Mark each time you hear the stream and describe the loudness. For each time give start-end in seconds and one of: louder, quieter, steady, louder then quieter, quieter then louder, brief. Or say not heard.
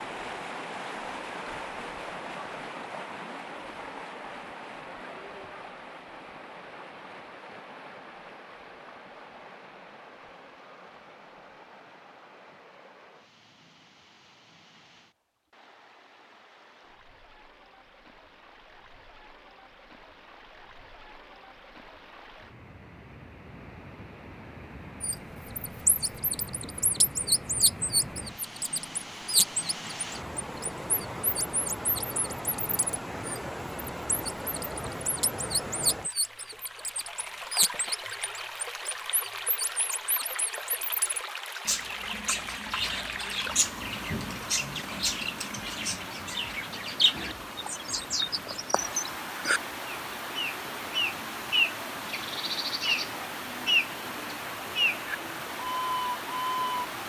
0.0-57.0 quieter then louder.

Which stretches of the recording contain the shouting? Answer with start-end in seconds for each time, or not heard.
not heard.